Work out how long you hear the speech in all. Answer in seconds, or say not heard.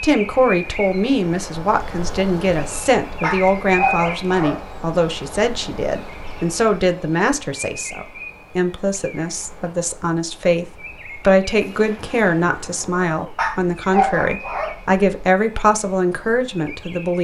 17 s.